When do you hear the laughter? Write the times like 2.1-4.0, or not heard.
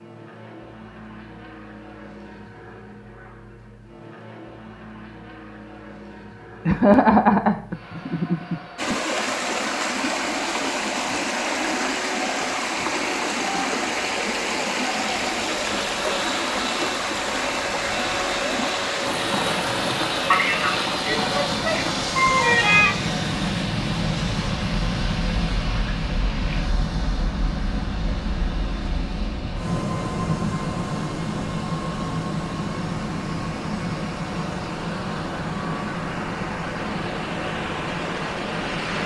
6.7-9.2, 20.3-22.9.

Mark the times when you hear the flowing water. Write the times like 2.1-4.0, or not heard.
8.8-39.0.